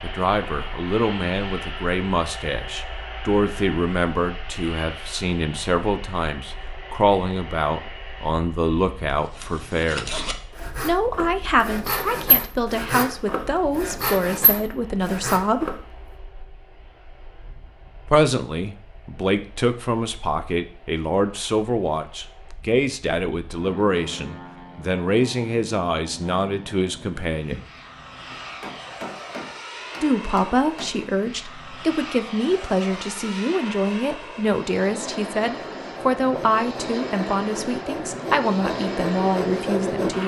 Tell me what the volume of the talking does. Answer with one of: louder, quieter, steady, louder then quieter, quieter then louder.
steady.